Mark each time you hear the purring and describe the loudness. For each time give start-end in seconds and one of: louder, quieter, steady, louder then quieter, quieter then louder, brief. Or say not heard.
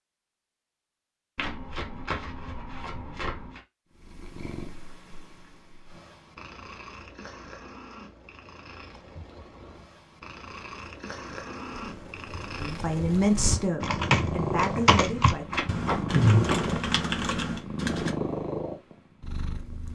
3.9-19.9 louder.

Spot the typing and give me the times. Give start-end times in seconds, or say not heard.
11.8-18.1.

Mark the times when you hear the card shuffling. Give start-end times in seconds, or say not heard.
1.4-3.6, 15.5-16.6.